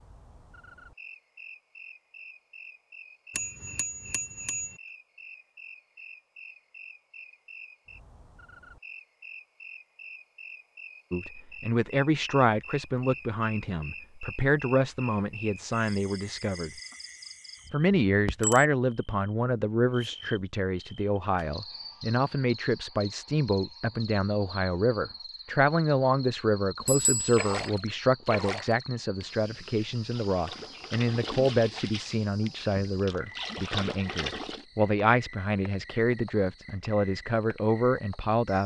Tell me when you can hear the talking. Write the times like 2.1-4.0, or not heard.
11.1-16.7, 17.7-38.6.